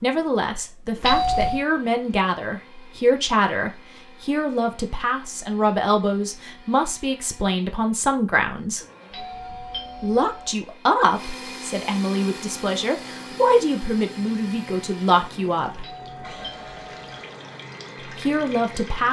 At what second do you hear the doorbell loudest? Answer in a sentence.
The volume of the doorbell peaks at 1 second.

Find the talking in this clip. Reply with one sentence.
You can hear the talking from 0.0 to 8.8 s, from 10.0 to 15.9 s and from 18.1 to 19.0 s.